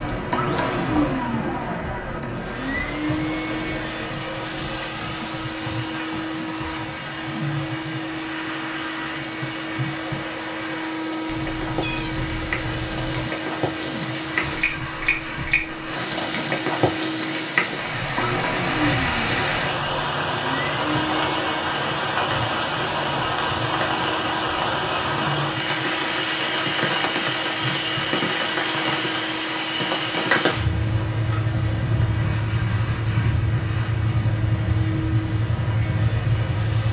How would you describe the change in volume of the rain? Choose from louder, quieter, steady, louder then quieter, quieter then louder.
louder.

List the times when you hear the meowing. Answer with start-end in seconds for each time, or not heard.
11.2-13.3.